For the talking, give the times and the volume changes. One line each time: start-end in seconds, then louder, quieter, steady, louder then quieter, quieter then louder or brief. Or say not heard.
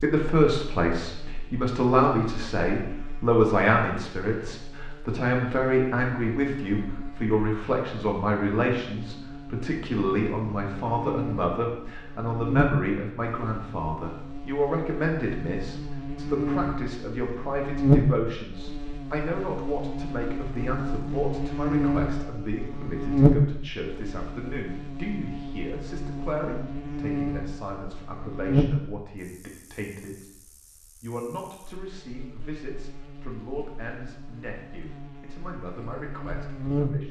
0.0-37.0 quieter.